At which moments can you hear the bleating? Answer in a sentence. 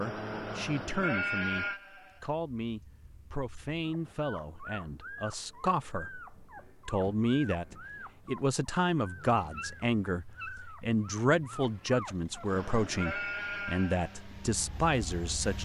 You can hear the bleating from 0.0 to 4.2 s and from 12.4 to 15.6 s.